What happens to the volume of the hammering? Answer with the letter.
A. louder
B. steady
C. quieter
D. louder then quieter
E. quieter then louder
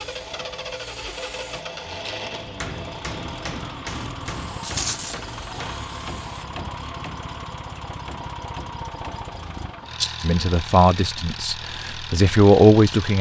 C.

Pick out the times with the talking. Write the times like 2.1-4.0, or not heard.
10.2-13.1.